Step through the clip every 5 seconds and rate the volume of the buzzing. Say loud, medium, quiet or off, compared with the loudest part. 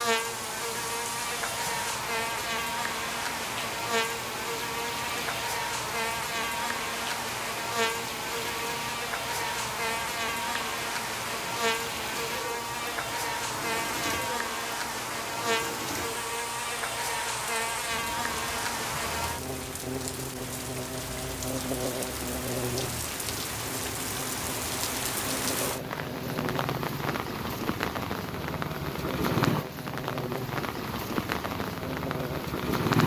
loud, loud, loud, loud, medium, medium, medium.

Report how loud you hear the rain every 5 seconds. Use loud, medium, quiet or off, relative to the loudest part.
medium, medium, medium, medium, medium, loud, loud.